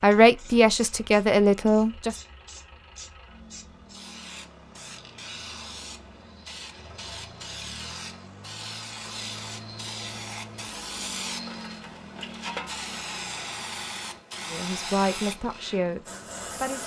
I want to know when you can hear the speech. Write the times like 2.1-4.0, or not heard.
0.0-2.1, 14.5-16.8.